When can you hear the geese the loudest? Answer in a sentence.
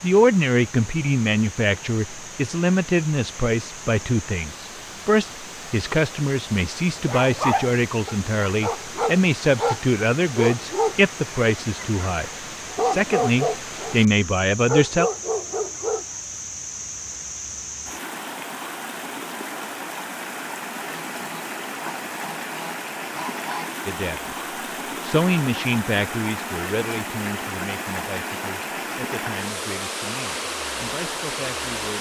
The loudest moment of the geese is at 23 seconds.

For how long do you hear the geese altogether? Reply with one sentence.
You can hear the geese for 3 seconds altogether.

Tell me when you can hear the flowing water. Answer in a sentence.
You can hear the flowing water from 0.0 to 31.9 s.